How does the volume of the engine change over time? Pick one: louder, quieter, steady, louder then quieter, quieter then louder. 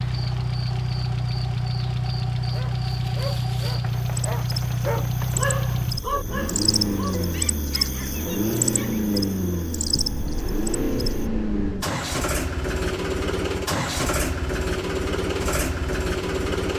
steady.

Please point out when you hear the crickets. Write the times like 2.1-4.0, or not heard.
0.0-11.3.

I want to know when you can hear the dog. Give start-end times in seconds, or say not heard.
2.4-9.1.